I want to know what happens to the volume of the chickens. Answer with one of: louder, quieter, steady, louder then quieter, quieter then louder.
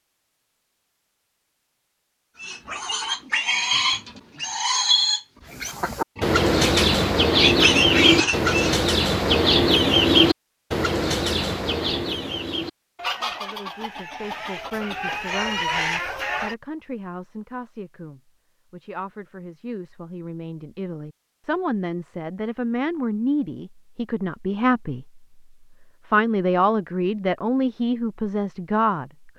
quieter.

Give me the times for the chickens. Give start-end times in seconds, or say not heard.
5.7-16.6.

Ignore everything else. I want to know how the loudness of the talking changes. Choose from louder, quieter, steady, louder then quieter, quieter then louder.
louder.